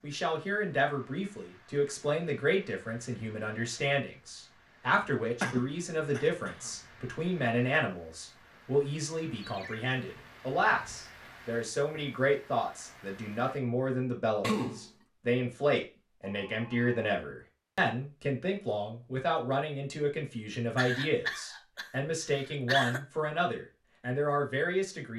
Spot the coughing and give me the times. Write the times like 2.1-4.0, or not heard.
5.4-6.7, 14.4-14.9, 20.8-23.0.